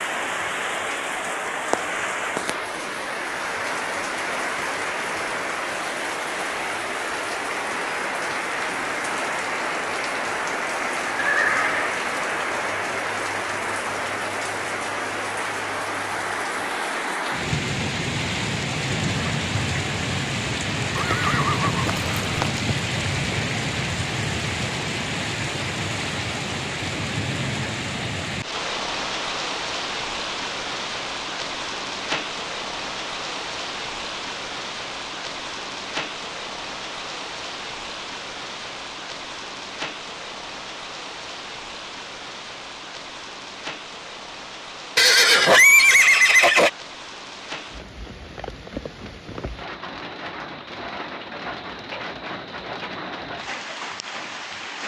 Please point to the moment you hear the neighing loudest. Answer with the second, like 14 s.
46 s.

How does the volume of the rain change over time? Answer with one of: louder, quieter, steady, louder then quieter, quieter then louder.
quieter.